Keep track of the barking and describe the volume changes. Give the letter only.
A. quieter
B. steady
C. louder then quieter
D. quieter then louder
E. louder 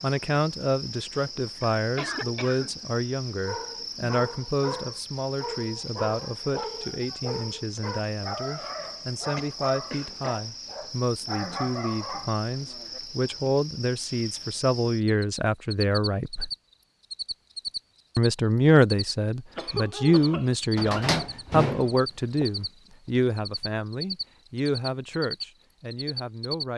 B.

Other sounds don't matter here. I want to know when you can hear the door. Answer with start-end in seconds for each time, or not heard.
20.8-22.4.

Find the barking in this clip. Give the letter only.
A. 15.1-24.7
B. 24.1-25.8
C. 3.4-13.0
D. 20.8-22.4
C.